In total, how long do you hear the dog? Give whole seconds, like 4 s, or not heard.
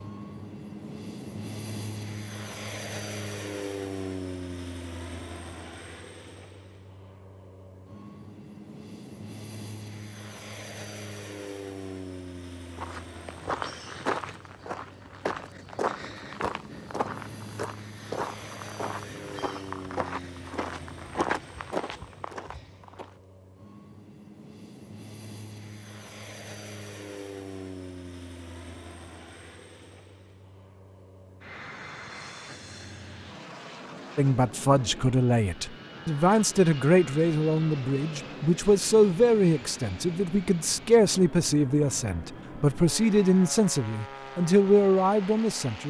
not heard.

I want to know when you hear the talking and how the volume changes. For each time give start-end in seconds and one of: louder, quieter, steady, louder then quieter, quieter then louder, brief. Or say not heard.
34.1-45.8 steady.